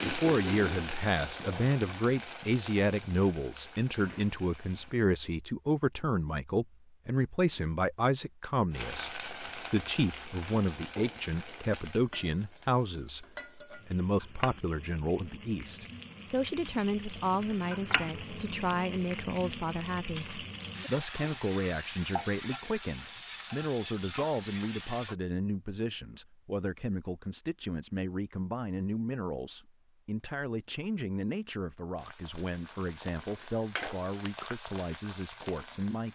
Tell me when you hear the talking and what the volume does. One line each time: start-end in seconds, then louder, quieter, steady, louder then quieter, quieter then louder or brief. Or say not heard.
0.1-36.1 quieter.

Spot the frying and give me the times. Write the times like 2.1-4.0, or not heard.
0.0-5.0, 8.7-25.1, 31.9-36.1.